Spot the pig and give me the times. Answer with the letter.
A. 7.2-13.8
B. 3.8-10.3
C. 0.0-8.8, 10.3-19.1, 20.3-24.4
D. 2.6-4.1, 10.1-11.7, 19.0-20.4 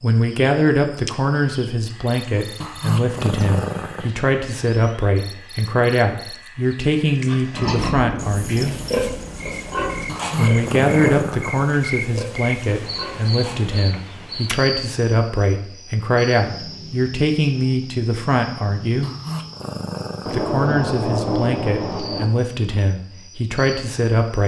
A.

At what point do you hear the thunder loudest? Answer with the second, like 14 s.
21 s.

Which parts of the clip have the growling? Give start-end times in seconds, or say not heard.
2.6-4.1, 10.1-11.7, 19.0-20.4.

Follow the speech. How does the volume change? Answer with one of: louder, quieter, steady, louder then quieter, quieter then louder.
steady.